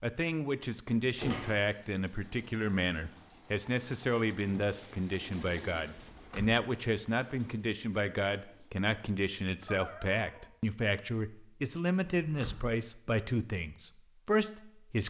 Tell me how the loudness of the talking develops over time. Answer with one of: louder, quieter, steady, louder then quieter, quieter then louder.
steady.